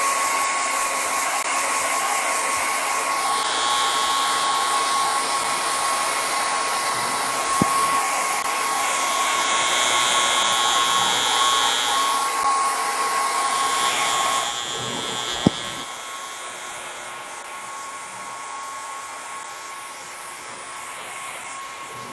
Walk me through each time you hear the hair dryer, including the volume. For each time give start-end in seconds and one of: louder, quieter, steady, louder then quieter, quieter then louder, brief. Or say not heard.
0.0-22.0 quieter.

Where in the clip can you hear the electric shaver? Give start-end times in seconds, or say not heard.
3.1-12.3, 13.3-22.0.